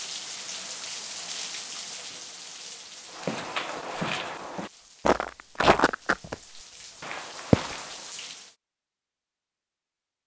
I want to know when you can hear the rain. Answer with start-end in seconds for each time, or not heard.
0.0-8.6.